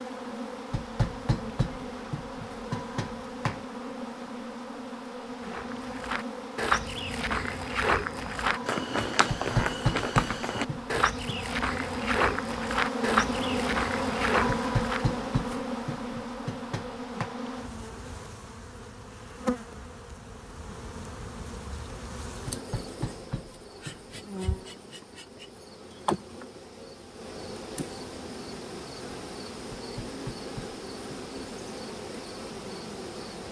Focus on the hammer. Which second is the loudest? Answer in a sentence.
The loudest moment of the hammer is at 10 seconds.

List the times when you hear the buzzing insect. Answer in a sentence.
You can hear the buzzing insect from 0.0 to 33.4 s.